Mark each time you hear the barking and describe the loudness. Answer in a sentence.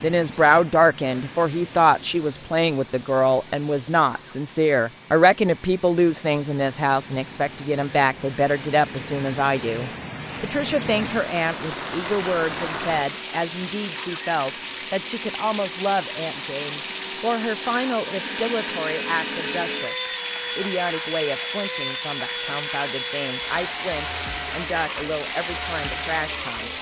The barking can't be heard in this clip.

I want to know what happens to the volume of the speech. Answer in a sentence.
The volume of the speech goes down.